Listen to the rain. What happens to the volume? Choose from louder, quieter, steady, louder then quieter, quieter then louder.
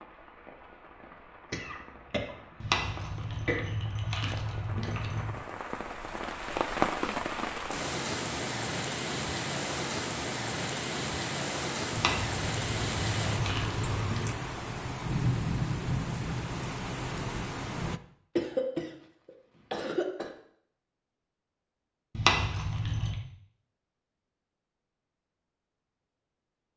louder.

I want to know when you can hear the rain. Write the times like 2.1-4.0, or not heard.
0.0-18.0.